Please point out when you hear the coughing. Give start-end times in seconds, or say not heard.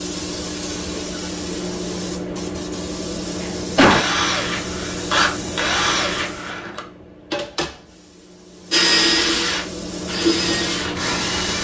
3.4-4.0.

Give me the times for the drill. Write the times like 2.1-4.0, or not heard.
3.8-6.8, 8.7-11.5.